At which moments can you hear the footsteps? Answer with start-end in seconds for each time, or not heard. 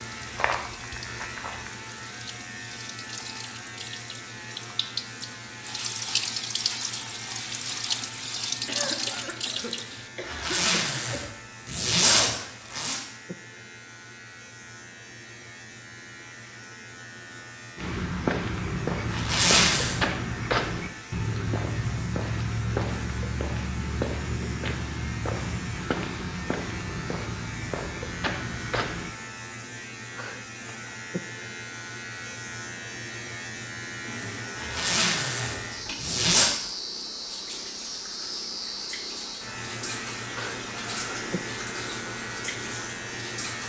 0.2-1.7, 17.8-29.1.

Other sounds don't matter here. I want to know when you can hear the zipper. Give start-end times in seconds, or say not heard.
10.2-13.0, 19.1-20.0, 34.5-36.5.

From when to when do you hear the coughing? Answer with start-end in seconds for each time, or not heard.
8.7-11.3.